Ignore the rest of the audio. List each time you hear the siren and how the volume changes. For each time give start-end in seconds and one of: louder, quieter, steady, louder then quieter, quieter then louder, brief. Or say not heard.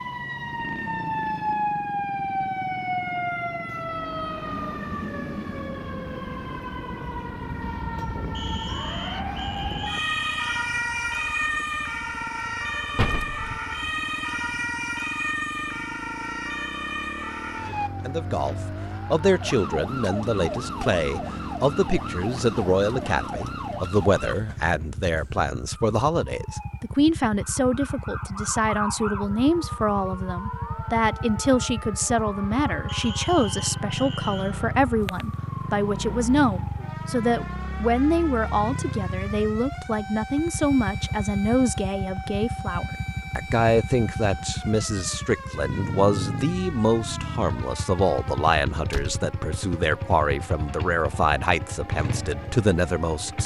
0.0-53.4 quieter.